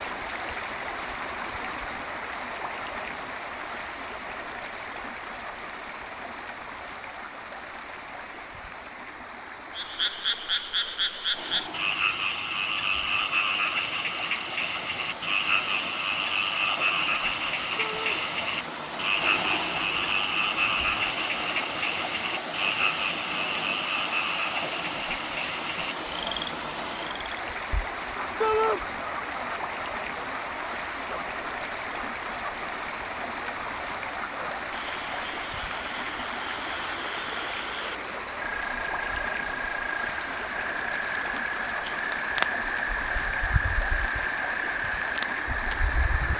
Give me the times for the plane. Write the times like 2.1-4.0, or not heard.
not heard.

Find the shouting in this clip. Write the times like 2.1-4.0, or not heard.
17.8-18.2, 28.4-28.8.